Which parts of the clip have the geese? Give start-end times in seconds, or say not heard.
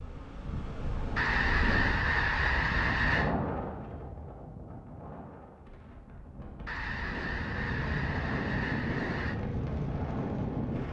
1.1-3.4, 6.7-9.4.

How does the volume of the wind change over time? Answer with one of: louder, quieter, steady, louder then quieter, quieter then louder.
quieter then louder.